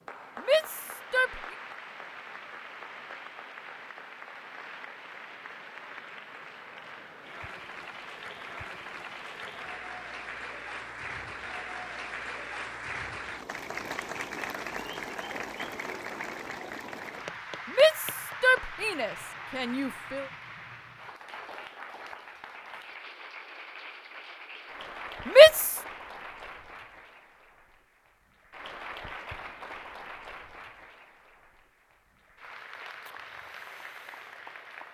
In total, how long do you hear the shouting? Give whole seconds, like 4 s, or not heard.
4 s.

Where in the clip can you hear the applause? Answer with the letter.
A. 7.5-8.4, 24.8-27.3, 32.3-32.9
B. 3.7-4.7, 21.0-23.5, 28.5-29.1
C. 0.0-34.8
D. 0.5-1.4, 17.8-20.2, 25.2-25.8
C.